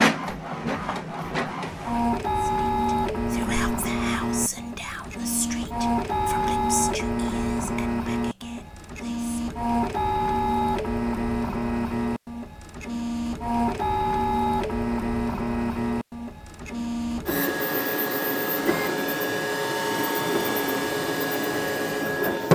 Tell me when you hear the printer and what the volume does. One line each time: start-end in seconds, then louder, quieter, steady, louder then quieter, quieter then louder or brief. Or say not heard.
0.0-22.5 steady.